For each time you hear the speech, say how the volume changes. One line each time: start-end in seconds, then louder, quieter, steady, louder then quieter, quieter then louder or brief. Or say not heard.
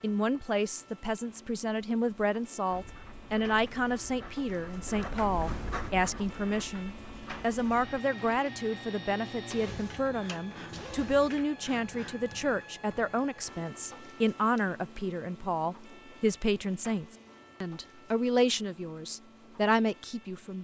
0.0-20.5 steady.